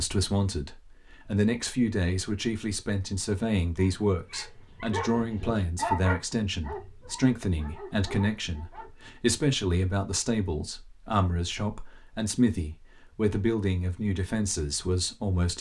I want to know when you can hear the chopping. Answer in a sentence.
You can't hear the chopping here.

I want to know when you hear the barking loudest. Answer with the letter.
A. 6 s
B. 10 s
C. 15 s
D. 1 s
A.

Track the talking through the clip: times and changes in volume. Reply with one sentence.
You can hear the talking from 0.0 to 15.5 s, at a steady volume.